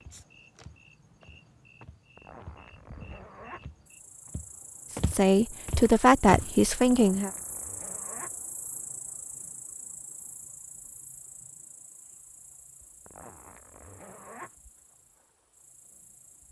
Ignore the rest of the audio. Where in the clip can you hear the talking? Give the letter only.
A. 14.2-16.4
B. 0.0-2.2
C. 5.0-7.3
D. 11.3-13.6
C.